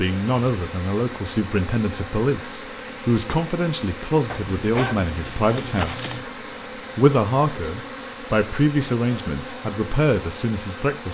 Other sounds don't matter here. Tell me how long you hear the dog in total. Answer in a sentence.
The dog can be heard for 2 seconds in total.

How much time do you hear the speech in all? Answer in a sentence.
The speech can be heard for 10 seconds in total.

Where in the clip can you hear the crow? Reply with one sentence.
You can't hear the crow here.